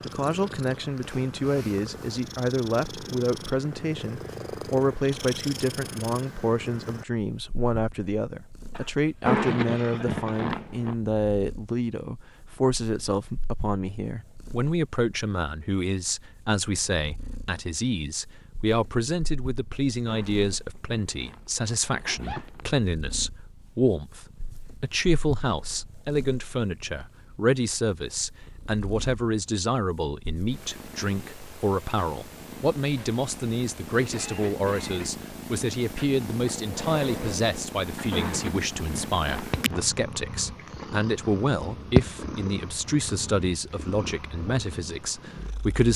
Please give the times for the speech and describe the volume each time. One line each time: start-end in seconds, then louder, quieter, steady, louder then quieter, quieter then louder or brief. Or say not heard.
0.0-45.9 steady.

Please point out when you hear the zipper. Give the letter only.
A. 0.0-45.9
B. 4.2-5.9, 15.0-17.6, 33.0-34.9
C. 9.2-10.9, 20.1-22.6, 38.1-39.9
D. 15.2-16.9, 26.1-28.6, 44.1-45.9
C.